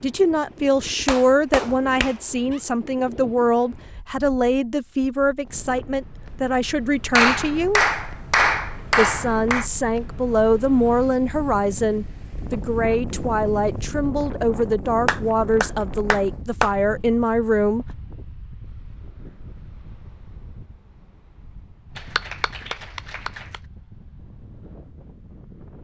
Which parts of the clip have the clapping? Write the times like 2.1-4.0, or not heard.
1.1-2.6, 7.1-9.7, 15.1-16.8, 21.9-23.6.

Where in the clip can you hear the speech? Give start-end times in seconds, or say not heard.
0.0-7.8, 8.9-17.9.